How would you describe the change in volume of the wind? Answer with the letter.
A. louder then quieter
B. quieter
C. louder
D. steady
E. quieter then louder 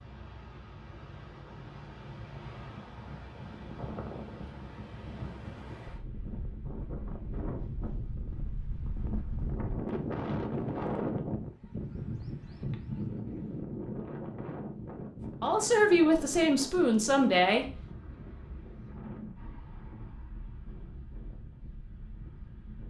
A.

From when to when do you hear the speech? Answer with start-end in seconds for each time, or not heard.
15.4-17.6.